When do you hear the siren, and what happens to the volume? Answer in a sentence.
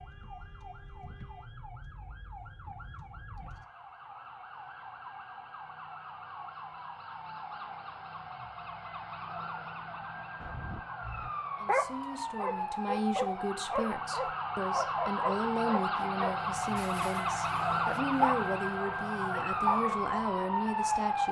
The siren can be heard from 0.0 to 21.2 s, getting louder.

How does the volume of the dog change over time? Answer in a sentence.
The loudness of the dog goes down, then up.